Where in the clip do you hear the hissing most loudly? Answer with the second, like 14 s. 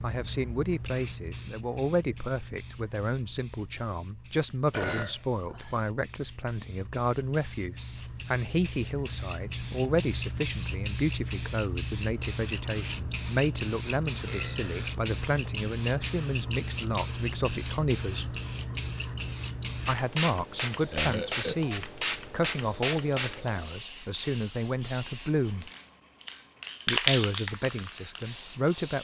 27 s.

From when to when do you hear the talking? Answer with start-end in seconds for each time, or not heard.
0.0-18.4, 19.9-25.7, 26.9-28.9.